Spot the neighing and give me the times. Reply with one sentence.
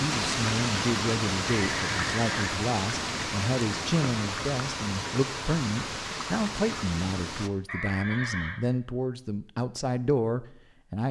You can hear the neighing from 1.5 to 2.5 s and from 7.7 to 8.6 s.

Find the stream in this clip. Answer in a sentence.
You can hear the stream from 0.0 to 7.5 s.